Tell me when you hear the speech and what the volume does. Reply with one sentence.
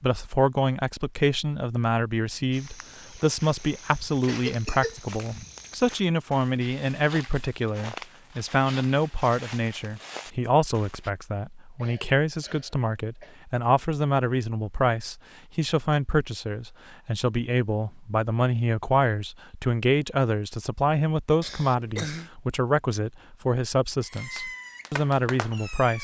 You can hear the speech from 0.0 to 25.9 s, at a steady volume.